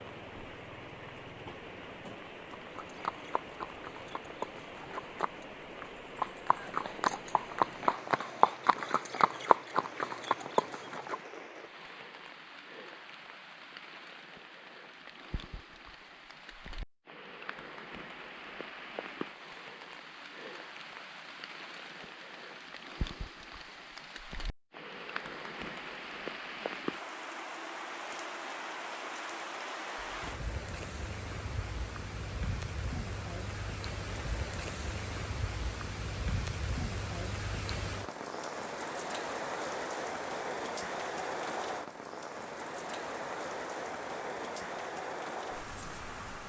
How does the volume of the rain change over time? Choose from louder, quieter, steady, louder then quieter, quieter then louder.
louder.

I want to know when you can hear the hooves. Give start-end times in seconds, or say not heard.
2.5-11.2.